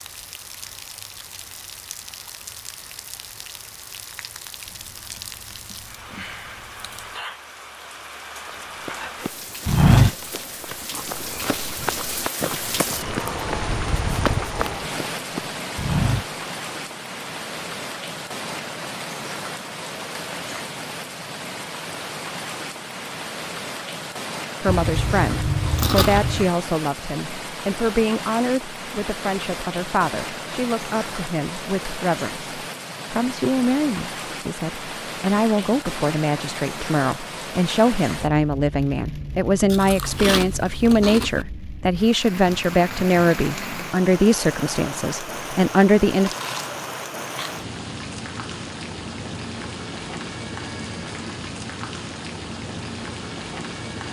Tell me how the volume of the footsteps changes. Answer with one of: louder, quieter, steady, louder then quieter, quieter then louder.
quieter then louder.